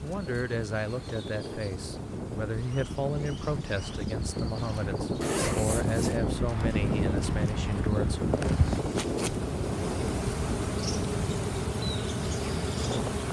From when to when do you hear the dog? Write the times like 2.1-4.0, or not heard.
not heard.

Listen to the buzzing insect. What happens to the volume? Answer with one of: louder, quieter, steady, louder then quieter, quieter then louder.
louder.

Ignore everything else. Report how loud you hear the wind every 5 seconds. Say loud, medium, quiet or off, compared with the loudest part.
medium, loud, medium.